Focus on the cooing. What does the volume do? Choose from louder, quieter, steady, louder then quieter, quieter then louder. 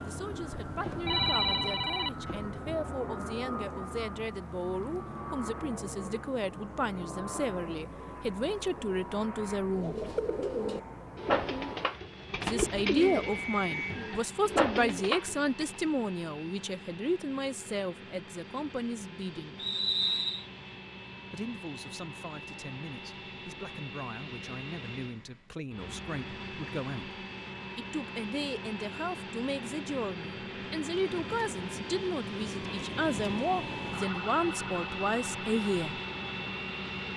quieter then louder.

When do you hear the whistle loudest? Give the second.
20 s.